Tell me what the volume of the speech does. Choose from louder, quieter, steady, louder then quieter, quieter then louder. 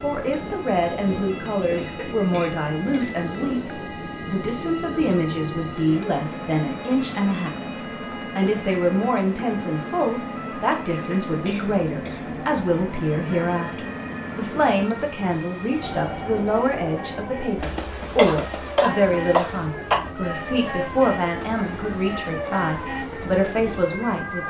steady.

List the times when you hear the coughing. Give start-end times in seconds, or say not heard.
1.8-3.1, 10.9-12.2, 18.1-20.0.